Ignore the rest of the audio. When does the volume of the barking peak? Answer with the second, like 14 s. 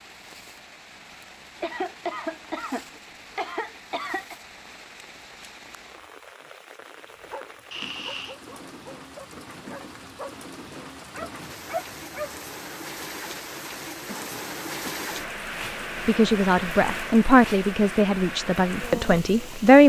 12 s.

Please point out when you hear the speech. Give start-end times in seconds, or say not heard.
16.1-19.8.